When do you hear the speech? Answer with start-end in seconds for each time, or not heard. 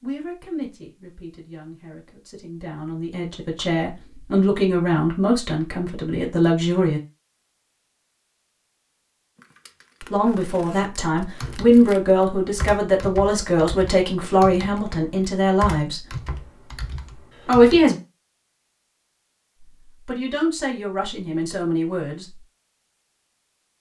0.0-7.0, 10.1-16.0, 17.4-17.9, 19.9-22.2.